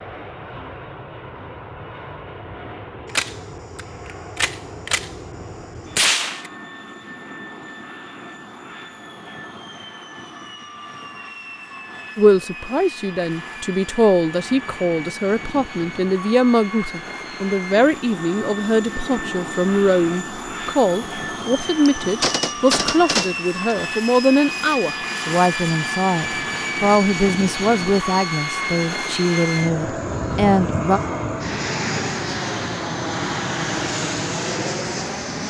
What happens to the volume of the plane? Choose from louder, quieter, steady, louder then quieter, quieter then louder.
louder.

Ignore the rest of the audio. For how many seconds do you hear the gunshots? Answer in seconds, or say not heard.
4 s.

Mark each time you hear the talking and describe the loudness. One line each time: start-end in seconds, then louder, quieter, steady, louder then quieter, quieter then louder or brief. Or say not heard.
12.2-31.0 steady.